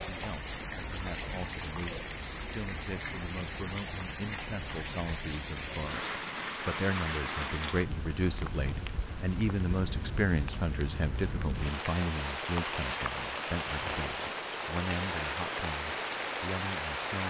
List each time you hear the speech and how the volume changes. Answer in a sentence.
You can hear the speech from 0.1 to 17.2 s, getting louder then quieter.